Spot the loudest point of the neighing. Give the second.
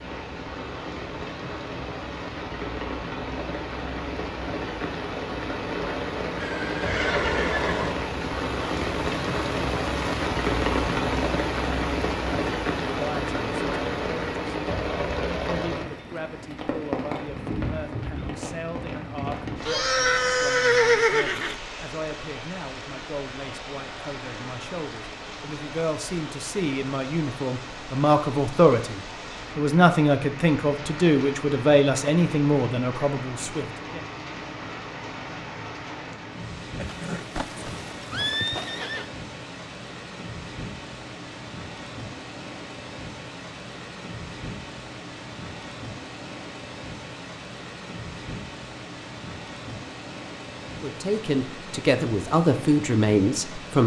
21 s.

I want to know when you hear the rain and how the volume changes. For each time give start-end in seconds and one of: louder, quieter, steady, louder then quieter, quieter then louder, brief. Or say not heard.
0.0-53.8 quieter.